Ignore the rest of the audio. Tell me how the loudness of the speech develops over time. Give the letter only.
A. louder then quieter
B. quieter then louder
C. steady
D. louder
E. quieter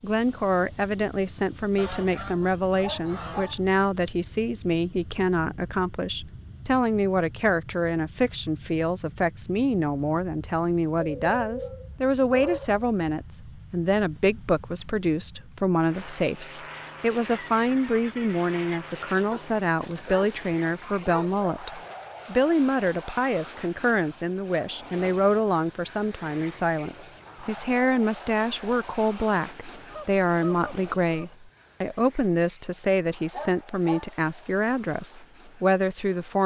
C.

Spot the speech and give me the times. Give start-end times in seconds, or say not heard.
0.0-36.4.